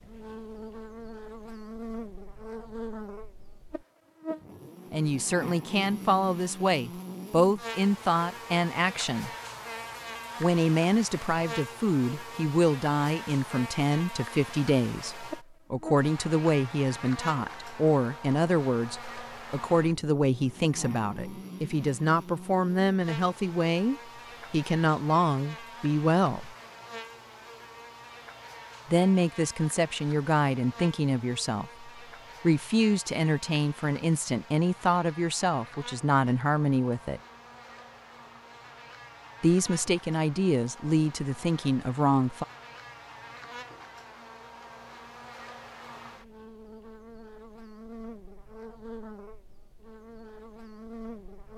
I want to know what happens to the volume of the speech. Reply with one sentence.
The loudness of the speech stays about the same.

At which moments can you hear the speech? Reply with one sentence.
You can hear the speech from 4.9 to 9.3 s, from 10.4 to 26.5 s, from 28.9 to 37.2 s and from 39.4 to 42.5 s.